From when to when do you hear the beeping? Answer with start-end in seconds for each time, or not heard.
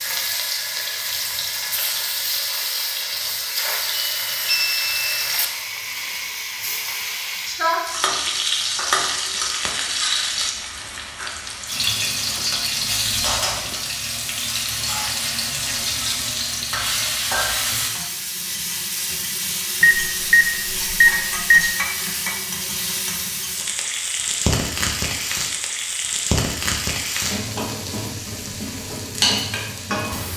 3.9-5.0, 19.8-21.6.